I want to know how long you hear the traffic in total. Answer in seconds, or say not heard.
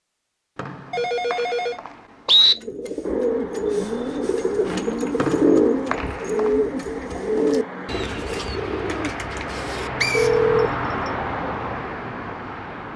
10 s.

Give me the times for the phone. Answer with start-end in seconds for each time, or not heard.
0.9-1.8, 4.6-5.3, 10.1-10.7.